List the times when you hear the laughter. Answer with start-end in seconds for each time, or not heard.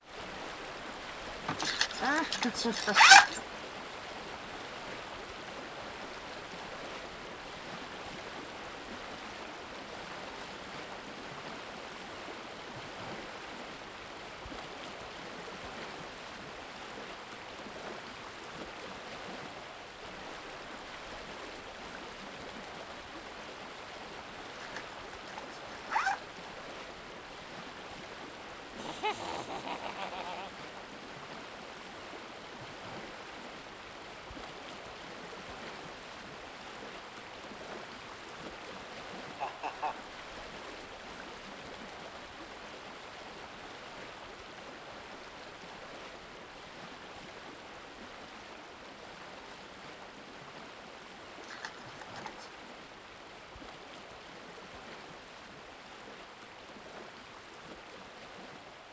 1.4-3.5, 28.8-30.5, 39.4-40.0.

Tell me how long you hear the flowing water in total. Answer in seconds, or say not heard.
59 s.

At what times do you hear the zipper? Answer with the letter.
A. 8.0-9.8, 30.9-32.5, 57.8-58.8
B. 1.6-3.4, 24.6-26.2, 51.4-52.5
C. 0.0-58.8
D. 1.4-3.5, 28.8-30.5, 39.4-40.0
B.